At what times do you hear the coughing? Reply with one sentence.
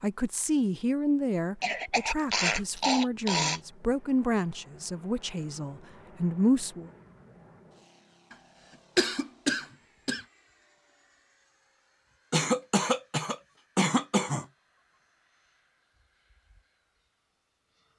The coughing can be heard from 1.6 to 3.6 s, from 8.9 to 10.2 s and from 12.3 to 14.4 s.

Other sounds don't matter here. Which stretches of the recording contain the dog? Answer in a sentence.
You can't hear the dog here.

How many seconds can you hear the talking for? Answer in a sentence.
The talking can be heard for 7 seconds in total.